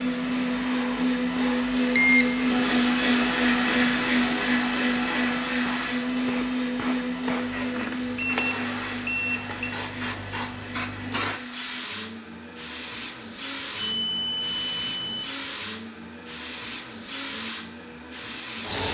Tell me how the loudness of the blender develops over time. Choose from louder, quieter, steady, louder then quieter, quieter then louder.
quieter.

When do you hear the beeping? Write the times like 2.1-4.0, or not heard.
1.8-2.4, 7.8-9.7, 13.8-15.2.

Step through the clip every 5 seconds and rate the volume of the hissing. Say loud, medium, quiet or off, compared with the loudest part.
medium, medium, loud, loud.